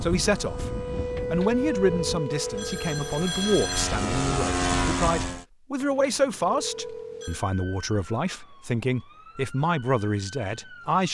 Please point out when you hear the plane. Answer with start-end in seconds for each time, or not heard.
0.0-5.5.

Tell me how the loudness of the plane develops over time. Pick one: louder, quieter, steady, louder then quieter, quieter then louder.
quieter then louder.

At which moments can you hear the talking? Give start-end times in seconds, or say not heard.
0.0-11.0.